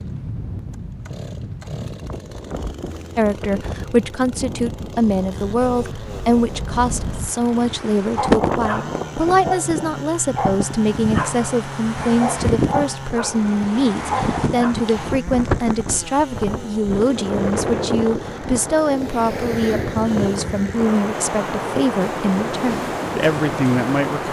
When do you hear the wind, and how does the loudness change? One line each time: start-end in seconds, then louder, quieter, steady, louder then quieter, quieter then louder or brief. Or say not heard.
0.0-24.2 louder.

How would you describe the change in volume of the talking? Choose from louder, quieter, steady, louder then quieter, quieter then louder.
steady.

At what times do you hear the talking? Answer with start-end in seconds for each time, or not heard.
3.1-24.2.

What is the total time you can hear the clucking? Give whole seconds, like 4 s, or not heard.
not heard.